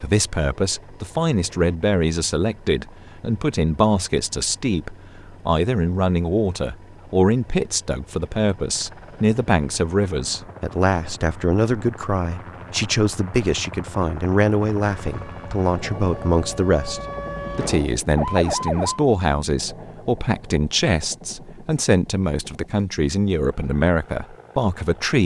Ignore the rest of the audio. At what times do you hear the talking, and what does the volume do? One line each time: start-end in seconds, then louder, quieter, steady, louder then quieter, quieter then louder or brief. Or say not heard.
0.0-25.2 steady.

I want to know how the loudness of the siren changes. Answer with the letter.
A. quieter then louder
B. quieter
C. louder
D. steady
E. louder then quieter
C.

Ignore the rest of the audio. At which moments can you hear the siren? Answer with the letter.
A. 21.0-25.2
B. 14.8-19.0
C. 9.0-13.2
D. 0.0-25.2
B.